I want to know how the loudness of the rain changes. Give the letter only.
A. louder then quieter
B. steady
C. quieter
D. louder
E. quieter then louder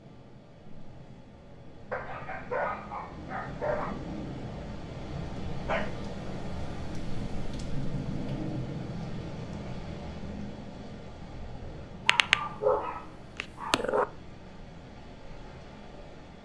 A.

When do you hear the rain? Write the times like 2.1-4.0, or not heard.
0.0-16.4.